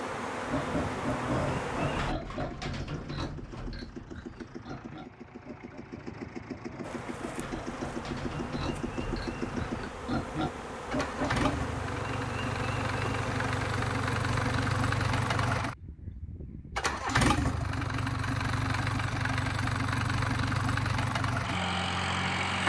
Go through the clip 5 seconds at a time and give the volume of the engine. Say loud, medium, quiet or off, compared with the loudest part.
quiet, medium, loud, loud, loud.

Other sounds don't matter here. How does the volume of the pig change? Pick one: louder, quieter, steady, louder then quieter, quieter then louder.
quieter then louder.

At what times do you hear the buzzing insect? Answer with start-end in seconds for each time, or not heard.
0.0-2.1, 6.8-15.7.